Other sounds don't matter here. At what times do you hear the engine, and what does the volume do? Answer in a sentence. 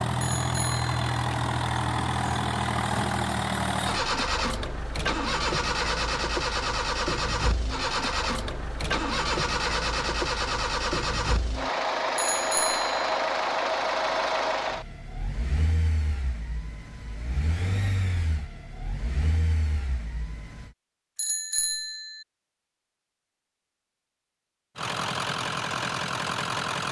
You can hear the engine from 0.0 to 20.7 s, getting quieter; and briefly from 24.8 to 26.8 s.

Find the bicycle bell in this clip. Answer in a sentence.
You can hear the bicycle bell from 0.2 to 1.1 s, from 12.2 to 13.1 s and from 21.1 to 22.2 s.